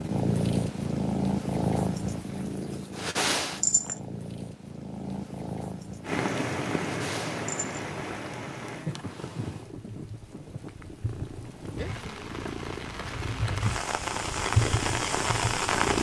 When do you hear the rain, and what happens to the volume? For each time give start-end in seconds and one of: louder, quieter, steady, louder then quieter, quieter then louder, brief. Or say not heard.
6.0-15.9 quieter then louder.